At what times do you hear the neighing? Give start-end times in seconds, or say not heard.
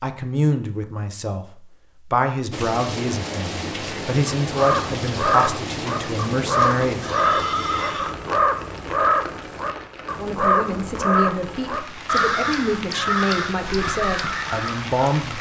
6.8-8.2.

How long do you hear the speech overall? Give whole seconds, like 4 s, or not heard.
12 s.